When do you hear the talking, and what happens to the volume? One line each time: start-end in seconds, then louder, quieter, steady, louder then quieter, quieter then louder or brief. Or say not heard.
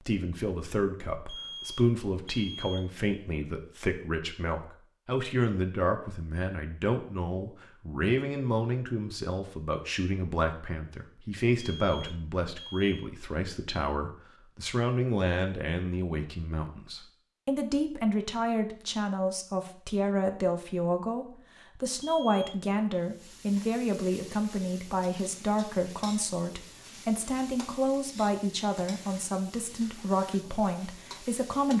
0.1-31.7 steady.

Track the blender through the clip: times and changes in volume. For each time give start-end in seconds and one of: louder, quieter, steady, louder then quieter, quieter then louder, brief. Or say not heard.
not heard.